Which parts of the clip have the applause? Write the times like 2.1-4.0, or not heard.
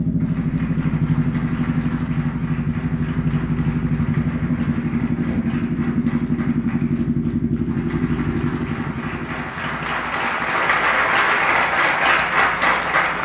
0.0-13.2.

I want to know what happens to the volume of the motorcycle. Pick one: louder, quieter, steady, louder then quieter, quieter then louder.
quieter.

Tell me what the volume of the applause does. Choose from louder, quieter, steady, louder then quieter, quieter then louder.
louder.